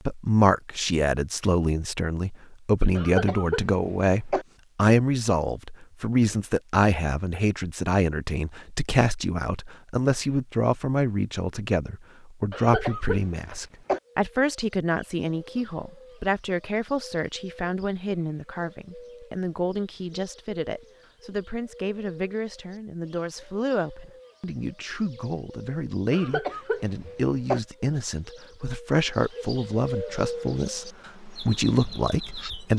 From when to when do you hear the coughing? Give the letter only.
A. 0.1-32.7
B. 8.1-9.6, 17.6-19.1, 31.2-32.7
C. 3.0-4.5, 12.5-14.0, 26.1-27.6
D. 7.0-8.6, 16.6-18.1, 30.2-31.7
C.